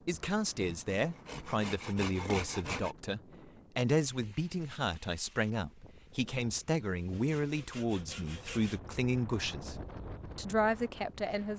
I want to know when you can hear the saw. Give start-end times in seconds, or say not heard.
0.1-3.0, 7.1-8.8.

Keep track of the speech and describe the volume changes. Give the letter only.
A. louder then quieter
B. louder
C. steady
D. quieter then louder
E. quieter
C.